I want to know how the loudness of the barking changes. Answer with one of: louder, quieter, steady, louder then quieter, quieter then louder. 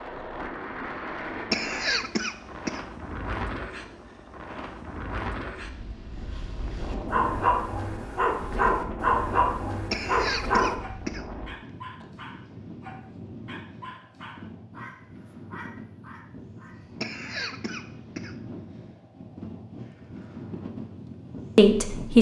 quieter.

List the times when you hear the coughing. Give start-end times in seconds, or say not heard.
1.5-2.8, 9.9-11.2, 17.0-18.4.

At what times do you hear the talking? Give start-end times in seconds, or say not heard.
21.6-22.1.